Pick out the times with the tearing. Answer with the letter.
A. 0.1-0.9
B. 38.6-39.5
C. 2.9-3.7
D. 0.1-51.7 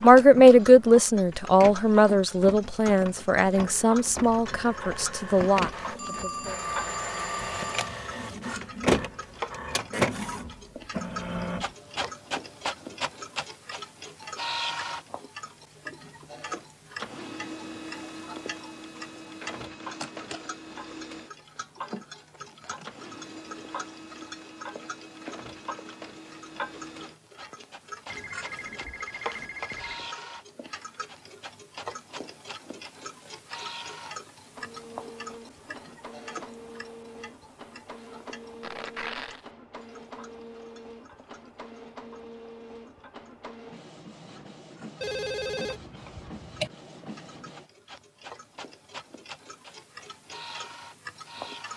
B.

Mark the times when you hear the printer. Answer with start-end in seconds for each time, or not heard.
0.1-51.7.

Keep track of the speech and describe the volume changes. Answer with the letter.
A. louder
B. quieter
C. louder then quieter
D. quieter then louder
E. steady
B.